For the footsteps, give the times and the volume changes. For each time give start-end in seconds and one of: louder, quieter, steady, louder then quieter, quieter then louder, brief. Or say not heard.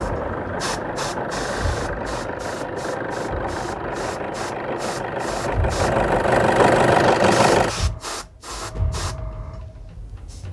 not heard.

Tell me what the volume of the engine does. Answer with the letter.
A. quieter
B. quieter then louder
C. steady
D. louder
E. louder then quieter
D.